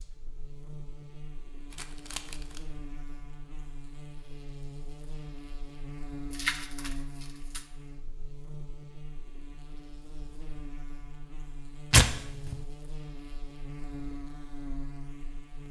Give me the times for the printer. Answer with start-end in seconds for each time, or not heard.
not heard.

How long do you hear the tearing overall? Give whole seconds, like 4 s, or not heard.
3 s.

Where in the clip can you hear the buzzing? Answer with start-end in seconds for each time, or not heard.
0.0-15.6.